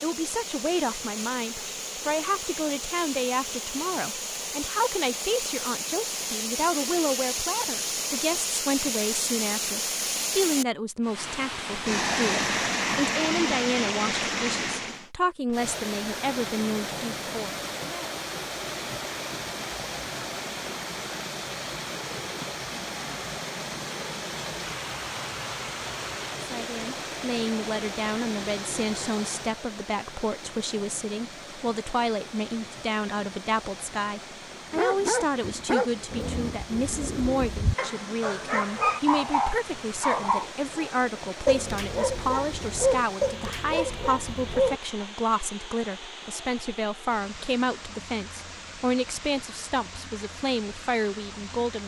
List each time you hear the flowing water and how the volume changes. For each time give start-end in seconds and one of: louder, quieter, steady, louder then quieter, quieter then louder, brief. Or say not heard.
0.0-51.8 quieter.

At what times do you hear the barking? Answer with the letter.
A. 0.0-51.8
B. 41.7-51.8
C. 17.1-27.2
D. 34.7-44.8
D.